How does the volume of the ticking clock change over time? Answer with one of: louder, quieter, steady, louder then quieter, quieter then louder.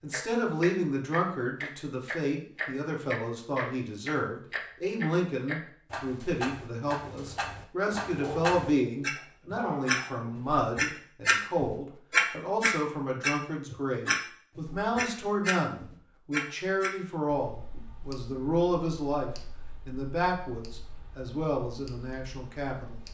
louder then quieter.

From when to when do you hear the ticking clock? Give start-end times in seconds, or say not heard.
0.1-23.0.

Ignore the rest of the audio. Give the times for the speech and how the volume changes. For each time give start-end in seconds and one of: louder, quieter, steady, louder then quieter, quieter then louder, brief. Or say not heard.
0.0-23.0 steady.